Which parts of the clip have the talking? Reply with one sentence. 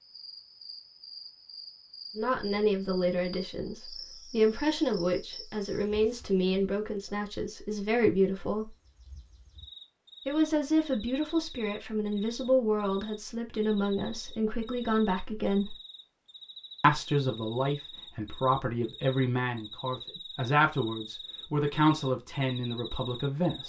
You can hear the talking from 2.1 to 8.7 s, from 10.2 to 15.8 s and from 16.8 to 23.6 s.